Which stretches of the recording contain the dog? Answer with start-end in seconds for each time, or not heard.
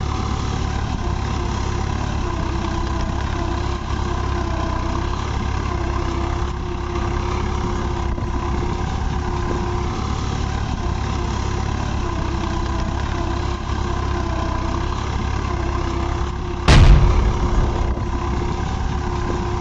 not heard.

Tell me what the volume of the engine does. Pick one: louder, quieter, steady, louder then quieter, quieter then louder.
steady.